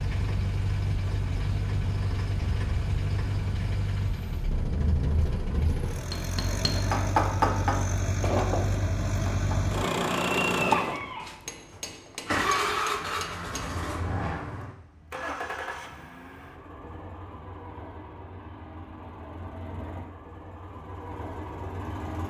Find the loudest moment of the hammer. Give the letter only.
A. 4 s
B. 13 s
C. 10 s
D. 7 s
D.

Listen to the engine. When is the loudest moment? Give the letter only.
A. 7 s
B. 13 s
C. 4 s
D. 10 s
D.